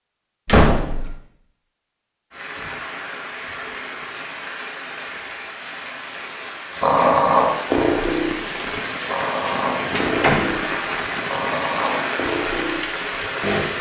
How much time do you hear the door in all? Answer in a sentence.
You can hear the door for 2 seconds altogether.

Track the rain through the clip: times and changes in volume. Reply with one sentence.
The rain can be heard from 2.3 to 13.7 s, getting louder.